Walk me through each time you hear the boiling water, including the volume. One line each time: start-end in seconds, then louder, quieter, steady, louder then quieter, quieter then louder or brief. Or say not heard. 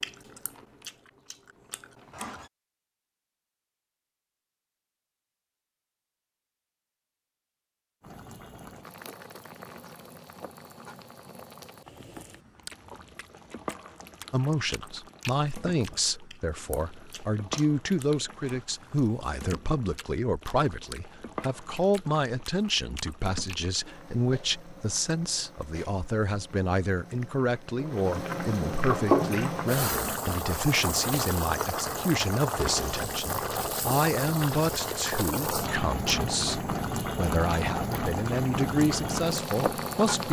8.0-40.2 louder.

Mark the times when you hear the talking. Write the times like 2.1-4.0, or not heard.
14.3-40.2.